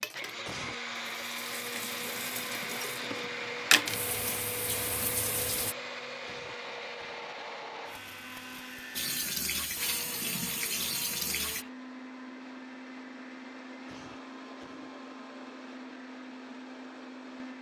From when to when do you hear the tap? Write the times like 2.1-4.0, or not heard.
0.0-5.8, 8.9-11.7.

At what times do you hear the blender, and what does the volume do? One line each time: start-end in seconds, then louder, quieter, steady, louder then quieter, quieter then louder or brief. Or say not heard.
0.0-17.5 quieter.